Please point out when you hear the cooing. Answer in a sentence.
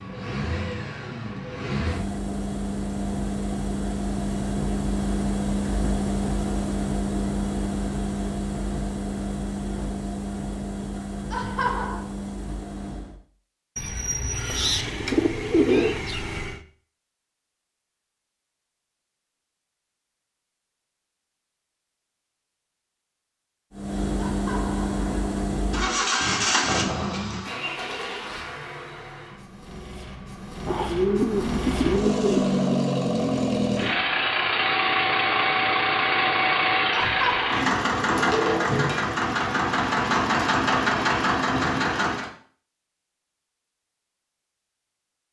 You can hear the cooing from 13.8 to 16.6 s and from 30.6 to 32.6 s.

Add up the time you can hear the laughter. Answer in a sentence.
The laughter can be heard for 3 seconds in total.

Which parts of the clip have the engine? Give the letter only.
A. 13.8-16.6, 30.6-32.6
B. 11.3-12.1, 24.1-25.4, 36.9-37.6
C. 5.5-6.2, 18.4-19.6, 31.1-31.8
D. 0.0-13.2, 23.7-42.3
D.